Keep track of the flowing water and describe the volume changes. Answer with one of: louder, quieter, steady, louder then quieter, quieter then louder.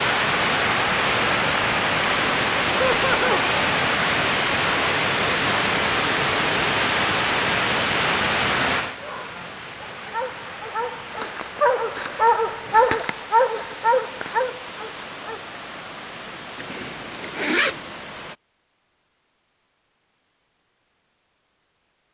quieter.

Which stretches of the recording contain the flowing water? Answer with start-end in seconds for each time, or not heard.
0.0-18.4.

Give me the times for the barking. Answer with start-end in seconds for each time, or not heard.
9.0-15.4.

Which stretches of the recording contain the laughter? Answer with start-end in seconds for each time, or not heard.
2.8-3.5.